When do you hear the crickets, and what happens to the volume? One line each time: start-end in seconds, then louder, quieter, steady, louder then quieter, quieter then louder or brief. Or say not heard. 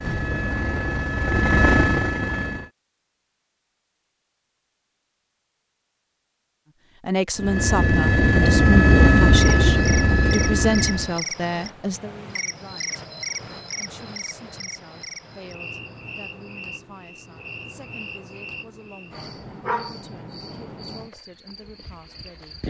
9.3-22.6 quieter.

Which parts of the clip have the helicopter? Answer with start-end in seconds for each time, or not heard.
0.0-2.7, 7.3-11.2.